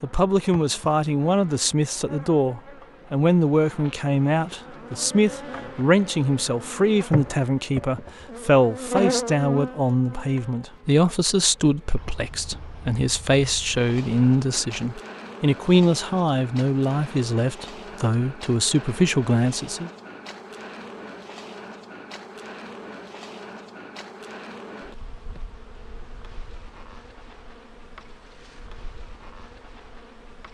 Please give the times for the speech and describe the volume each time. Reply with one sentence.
You can hear the speech from 0.0 to 19.9 s, at a steady volume.